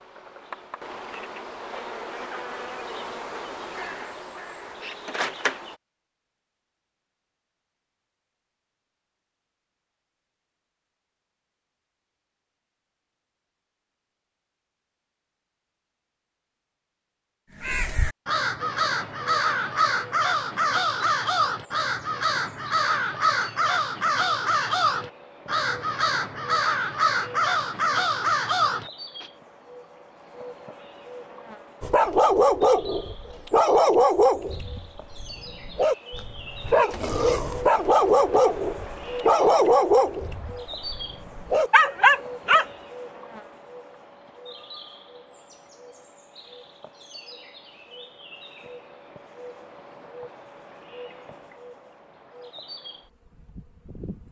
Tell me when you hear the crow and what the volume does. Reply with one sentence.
The crow can be heard from 17.5 to 29.2 s, at a steady volume.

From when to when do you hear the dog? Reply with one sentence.
The dog can be heard from 31.8 to 42.6 s.